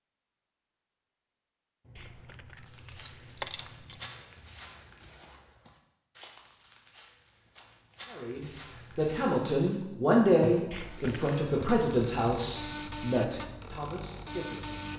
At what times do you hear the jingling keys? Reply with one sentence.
The jingling keys can be heard from 1.9 to 4.1 s and from 10.7 to 11.4 s.